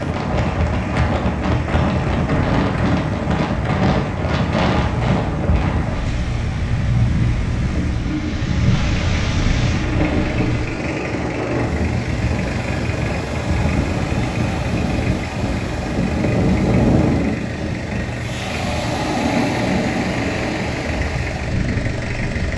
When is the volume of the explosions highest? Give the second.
9 s.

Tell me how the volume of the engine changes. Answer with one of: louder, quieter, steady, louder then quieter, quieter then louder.
steady.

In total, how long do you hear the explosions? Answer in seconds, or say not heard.
2 s.